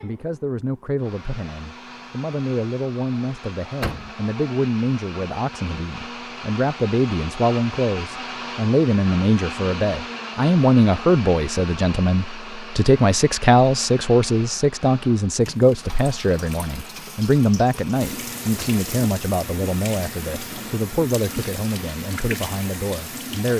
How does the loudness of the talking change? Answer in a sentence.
The volume of the talking goes up, then down.